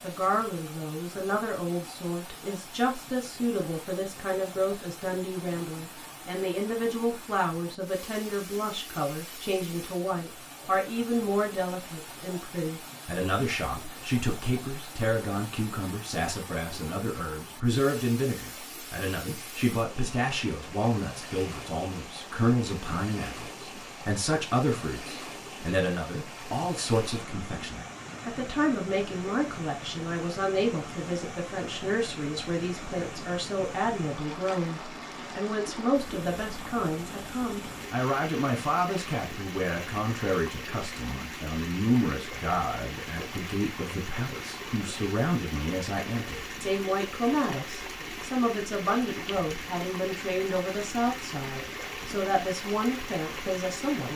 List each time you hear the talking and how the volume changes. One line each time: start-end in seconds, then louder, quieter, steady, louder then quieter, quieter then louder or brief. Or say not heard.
0.0-54.1 steady.